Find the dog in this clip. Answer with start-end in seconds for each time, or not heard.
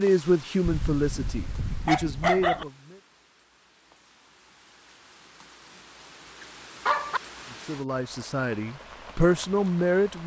0.6-2.6, 6.4-7.2.